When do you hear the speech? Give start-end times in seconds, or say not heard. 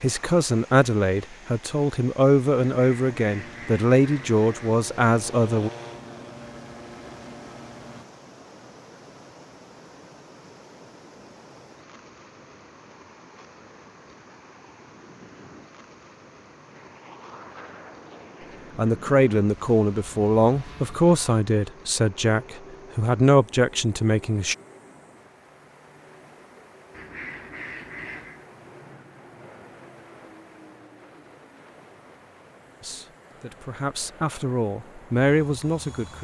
0.0-5.7, 18.8-24.6, 32.8-36.1.